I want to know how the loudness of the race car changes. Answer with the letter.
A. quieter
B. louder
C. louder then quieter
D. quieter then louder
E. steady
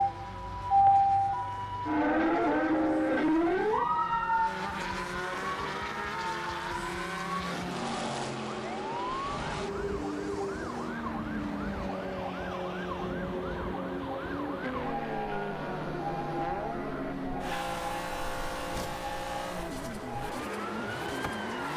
B.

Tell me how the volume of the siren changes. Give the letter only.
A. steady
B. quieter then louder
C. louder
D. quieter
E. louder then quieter
D.